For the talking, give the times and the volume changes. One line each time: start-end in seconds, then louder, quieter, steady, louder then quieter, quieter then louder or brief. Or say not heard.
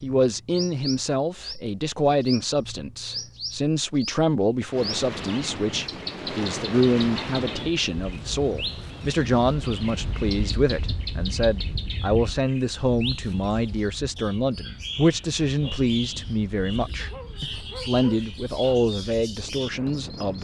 0.0-20.3 steady.